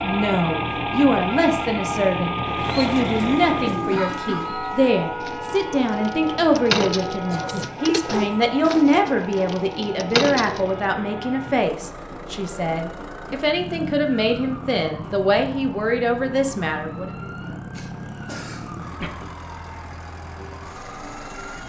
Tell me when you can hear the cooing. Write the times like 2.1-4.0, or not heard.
2.6-10.8.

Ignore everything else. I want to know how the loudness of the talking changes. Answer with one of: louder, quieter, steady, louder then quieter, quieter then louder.
steady.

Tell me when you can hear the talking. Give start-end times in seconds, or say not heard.
0.0-17.1.